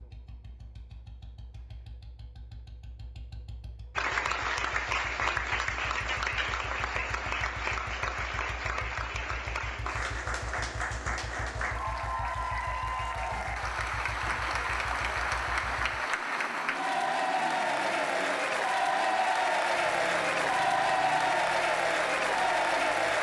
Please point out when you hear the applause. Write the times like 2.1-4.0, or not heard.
4.0-23.1.